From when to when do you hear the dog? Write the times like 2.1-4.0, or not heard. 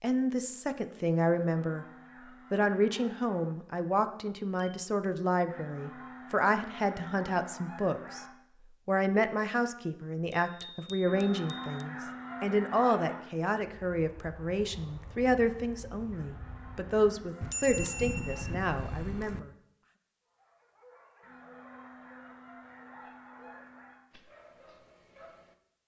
20.2-25.6.